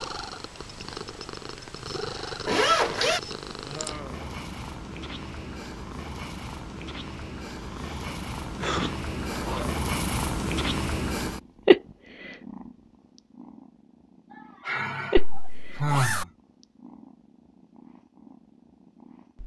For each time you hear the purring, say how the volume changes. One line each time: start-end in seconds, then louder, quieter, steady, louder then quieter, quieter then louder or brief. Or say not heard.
0.0-19.4 louder then quieter.